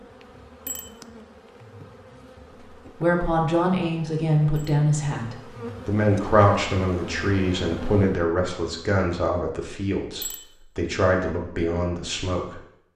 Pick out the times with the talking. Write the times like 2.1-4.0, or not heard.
3.0-12.6.